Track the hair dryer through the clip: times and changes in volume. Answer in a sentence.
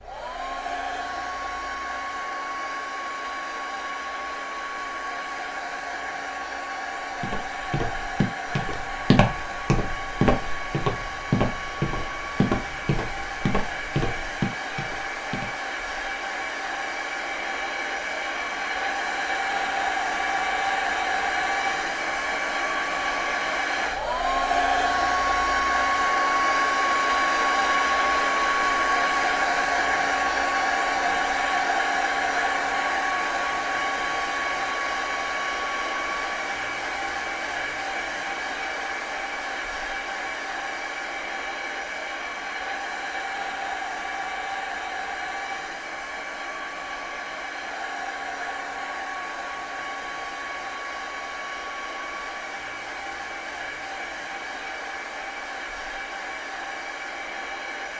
You can hear the hair dryer from 0.0 to 57.9 s, getting louder then quieter.